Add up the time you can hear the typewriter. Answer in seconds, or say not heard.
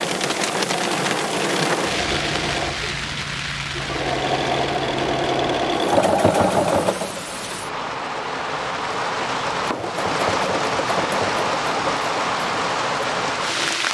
not heard.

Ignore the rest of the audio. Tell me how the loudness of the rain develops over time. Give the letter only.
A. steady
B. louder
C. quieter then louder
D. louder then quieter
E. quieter
C.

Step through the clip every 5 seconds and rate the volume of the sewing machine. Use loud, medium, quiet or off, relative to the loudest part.
medium, loud, medium.